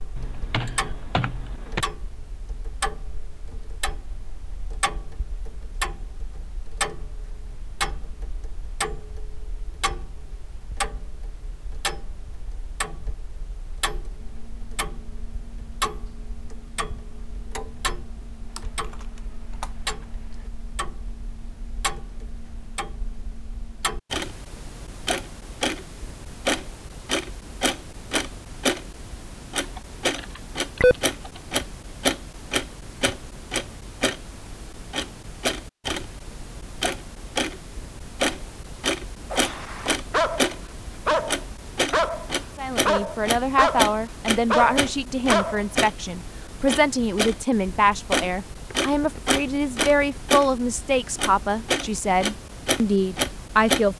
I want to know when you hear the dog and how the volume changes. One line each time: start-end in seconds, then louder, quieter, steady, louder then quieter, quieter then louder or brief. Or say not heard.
39.3-45.6 steady.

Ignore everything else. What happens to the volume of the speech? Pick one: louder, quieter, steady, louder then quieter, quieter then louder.
steady.